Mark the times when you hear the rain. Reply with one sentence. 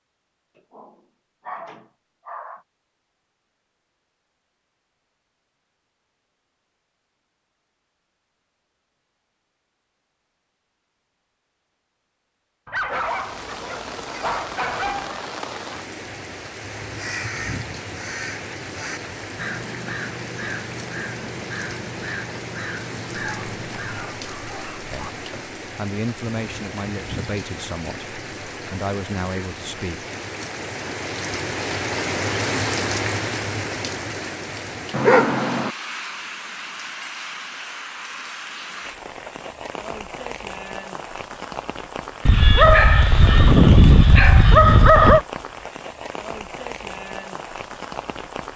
You can hear the rain from 12.8 to 48.5 s.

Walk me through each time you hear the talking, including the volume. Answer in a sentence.
You can hear the talking from 24.9 to 30.1 s, getting quieter then louder.